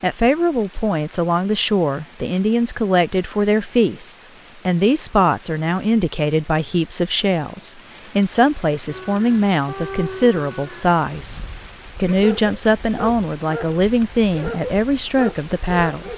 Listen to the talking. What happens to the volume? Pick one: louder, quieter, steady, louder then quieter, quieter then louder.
steady.